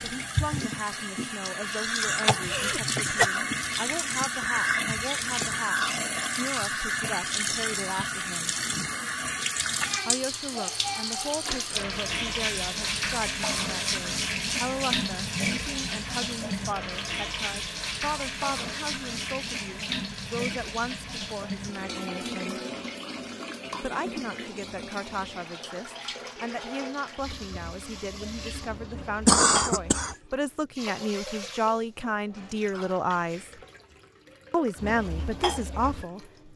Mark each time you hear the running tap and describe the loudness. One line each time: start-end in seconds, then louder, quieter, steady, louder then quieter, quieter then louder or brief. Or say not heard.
0.0-36.5 quieter.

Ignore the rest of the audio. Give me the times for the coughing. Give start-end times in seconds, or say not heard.
2.2-3.3, 29.2-30.1.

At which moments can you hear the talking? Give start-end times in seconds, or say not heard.
0.0-8.6, 10.1-22.6, 23.8-33.5, 34.5-36.5.